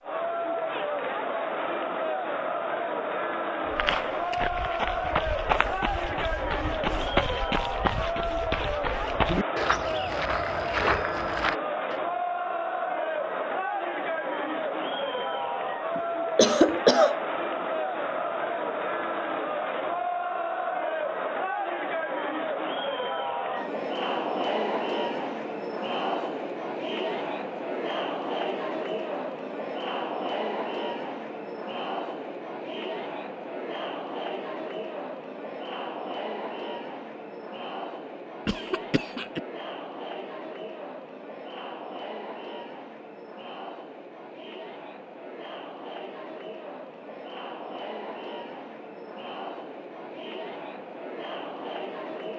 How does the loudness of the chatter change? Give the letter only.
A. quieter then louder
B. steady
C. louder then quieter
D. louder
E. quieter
E.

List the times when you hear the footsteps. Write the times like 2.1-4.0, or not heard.
3.6-12.0.